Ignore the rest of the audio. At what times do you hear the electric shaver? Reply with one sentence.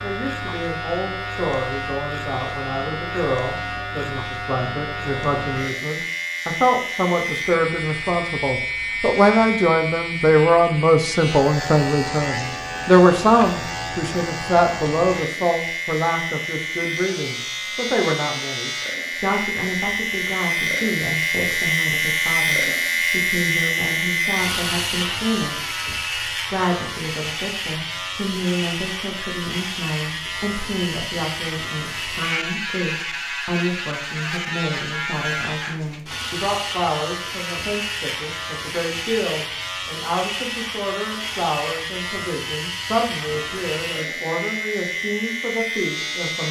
The electric shaver can be heard from 0.0 to 46.4 s.